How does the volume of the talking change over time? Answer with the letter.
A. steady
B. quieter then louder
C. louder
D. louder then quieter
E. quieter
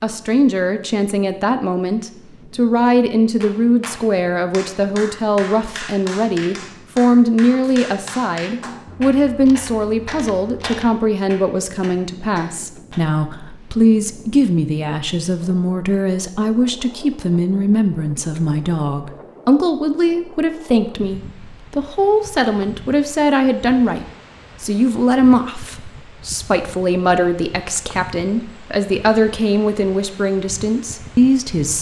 A.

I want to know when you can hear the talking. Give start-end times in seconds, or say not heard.
0.0-31.7.